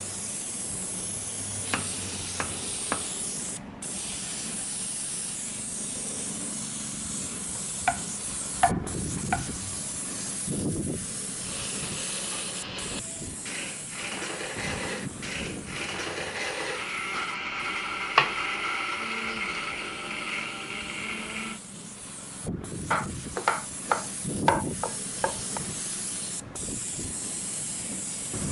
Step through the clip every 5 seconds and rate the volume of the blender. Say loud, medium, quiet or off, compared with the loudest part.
off, off, medium, loud, loud, off.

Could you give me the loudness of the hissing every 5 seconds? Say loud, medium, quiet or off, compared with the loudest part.
loud, loud, loud, medium, loud, loud.